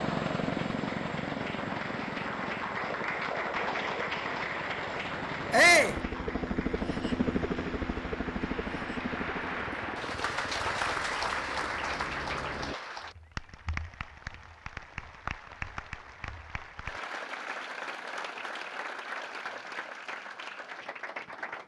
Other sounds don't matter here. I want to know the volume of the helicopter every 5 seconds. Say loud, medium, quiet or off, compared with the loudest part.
loud, loud, medium, off, off.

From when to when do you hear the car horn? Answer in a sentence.
The car horn can't be heard in this clip.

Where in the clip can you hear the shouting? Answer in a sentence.
You can hear the shouting from 5.5 to 6.0 s.